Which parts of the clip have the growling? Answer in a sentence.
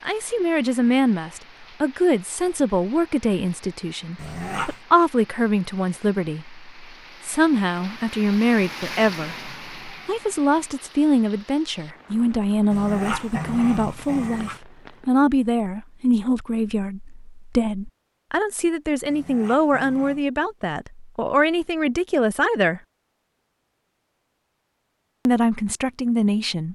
You can hear the growling from 4.2 to 4.8 s, from 12.7 to 14.6 s and from 19.1 to 20.2 s.